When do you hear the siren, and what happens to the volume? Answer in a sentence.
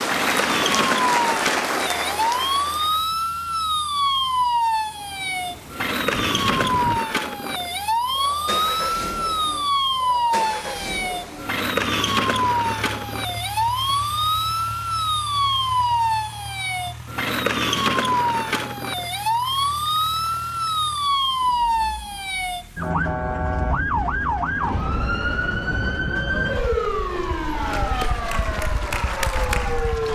The siren can be heard from 0.0 to 30.1 s, at a steady volume.